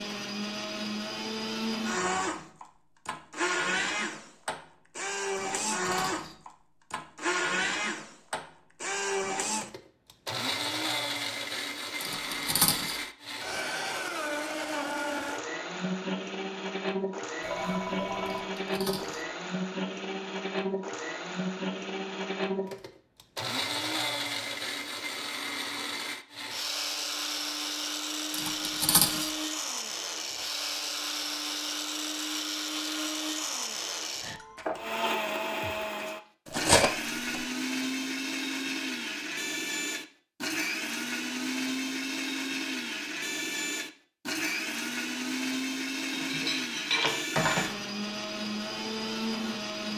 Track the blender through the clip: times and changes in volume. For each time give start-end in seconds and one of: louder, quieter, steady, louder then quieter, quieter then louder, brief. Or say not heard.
0.0-49.9 steady.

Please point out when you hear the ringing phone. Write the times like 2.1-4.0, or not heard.
17.4-18.5.